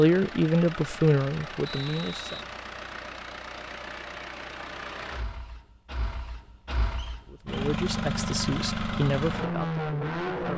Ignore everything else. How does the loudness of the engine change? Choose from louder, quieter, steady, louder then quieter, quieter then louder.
louder.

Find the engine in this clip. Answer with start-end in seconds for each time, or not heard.
0.0-10.5.